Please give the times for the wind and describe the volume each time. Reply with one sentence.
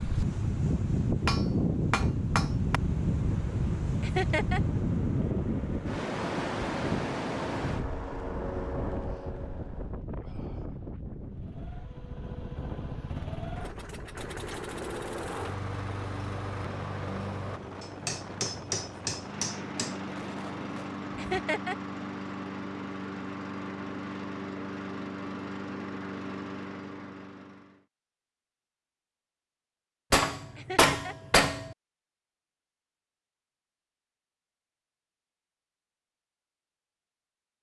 The wind can be heard from 0.0 to 21.3 s, getting quieter.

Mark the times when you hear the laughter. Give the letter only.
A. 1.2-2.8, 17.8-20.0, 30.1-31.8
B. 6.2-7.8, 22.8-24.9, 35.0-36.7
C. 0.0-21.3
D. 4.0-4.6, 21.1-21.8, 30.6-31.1
D.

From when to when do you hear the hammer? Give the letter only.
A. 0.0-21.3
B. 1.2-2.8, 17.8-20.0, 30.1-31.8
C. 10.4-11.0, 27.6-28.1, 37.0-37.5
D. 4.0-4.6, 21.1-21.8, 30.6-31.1
B.